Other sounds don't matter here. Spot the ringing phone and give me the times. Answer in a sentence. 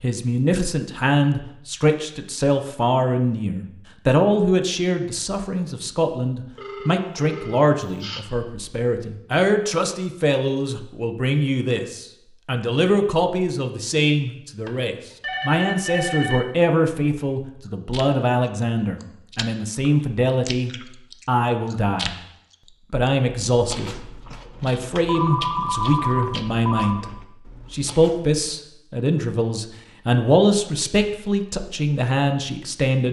You can hear the ringing phone from 6.5 to 8.2 s, from 14.7 to 16.4 s and from 25.1 to 27.0 s.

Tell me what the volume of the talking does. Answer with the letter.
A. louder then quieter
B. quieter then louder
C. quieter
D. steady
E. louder
D.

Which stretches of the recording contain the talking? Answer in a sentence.
You can hear the talking from 0.0 to 22.1 s and from 22.9 to 33.0 s.